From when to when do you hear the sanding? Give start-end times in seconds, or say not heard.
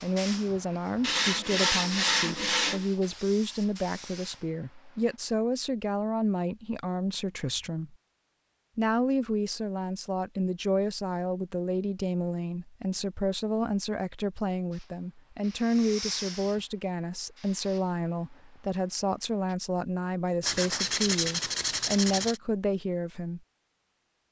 1.0-2.9, 20.4-22.4.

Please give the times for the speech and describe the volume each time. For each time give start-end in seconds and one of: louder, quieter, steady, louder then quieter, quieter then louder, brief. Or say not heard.
0.0-8.0 steady
8.8-23.4 steady.